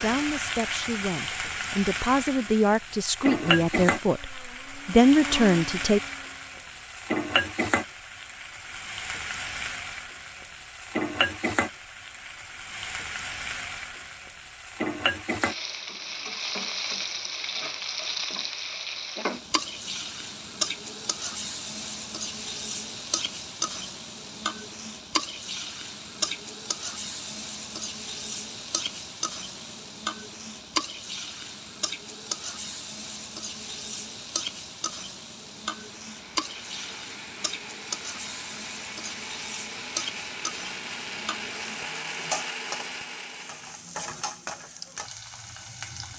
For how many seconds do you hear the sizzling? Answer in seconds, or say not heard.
46 s.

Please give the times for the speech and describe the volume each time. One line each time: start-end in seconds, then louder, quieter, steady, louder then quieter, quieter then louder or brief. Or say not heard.
0.0-6.0 louder.